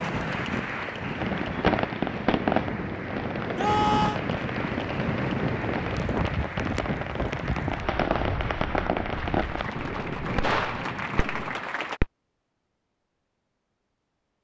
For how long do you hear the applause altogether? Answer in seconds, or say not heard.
12 s.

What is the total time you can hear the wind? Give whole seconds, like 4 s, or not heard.
12 s.